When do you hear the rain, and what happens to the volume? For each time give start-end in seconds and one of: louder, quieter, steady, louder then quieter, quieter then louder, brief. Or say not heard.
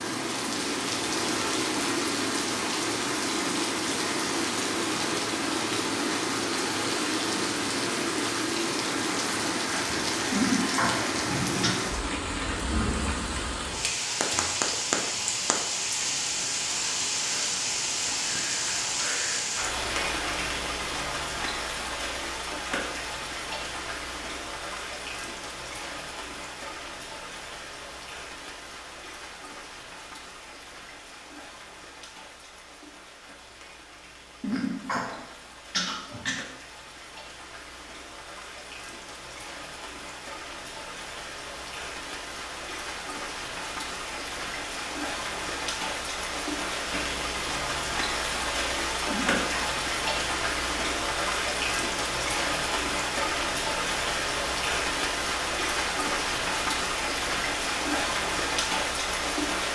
0.0-59.7 quieter then louder.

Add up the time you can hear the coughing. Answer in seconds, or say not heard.
4 s.